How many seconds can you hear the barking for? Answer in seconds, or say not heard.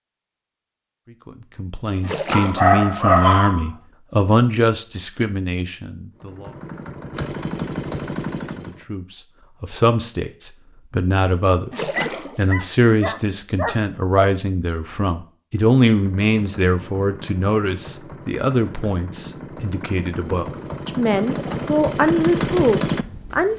4 s.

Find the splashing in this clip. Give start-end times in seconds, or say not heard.
2.0-2.8, 11.7-12.4, 21.2-21.8.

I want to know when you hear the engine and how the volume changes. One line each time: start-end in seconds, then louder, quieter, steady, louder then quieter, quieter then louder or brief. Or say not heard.
6.2-8.8 brief
15.9-23.5 louder.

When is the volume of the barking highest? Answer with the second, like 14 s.
3 s.